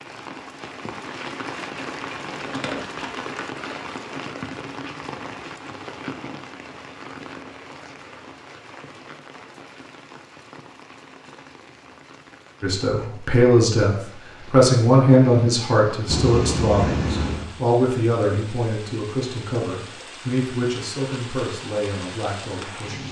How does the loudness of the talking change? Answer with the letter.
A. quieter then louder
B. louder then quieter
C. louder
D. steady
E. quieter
E.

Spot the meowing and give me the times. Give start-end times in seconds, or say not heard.
not heard.